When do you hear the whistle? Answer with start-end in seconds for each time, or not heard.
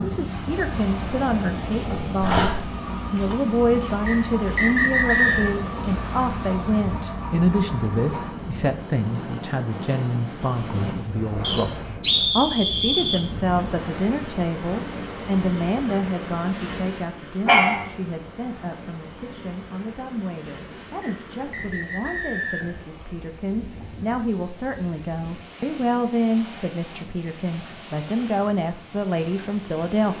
4.0-5.5, 11.4-13.2, 21.0-22.8.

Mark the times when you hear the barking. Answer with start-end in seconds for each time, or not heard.
2.2-2.6, 17.4-17.9.